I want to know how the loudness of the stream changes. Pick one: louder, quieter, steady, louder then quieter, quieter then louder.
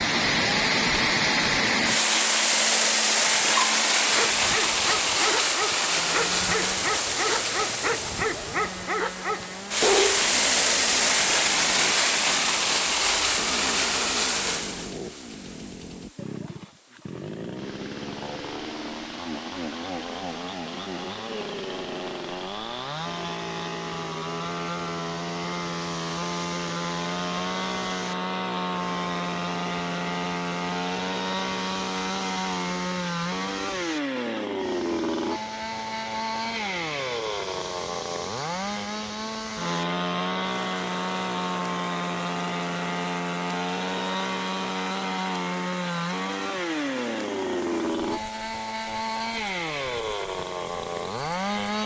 quieter.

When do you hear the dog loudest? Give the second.
10 s.